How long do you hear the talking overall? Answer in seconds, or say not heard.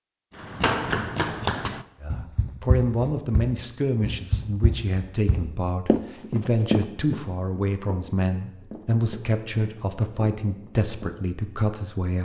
10 s.